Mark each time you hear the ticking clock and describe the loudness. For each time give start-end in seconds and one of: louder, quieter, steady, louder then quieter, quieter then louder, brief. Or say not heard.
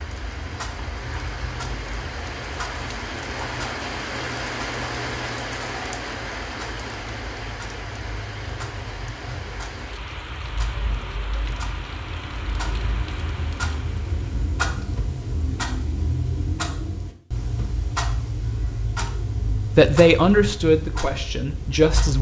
0.0-22.1 louder.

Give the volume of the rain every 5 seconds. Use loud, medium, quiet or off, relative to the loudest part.
loud, loud, medium, off, off.